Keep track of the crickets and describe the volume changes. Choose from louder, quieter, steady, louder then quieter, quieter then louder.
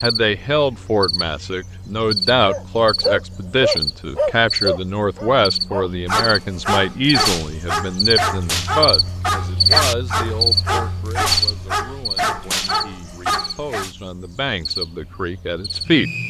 louder then quieter.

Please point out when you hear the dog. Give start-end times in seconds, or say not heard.
2.5-13.9.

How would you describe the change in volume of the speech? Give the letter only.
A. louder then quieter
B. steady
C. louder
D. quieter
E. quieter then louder
D.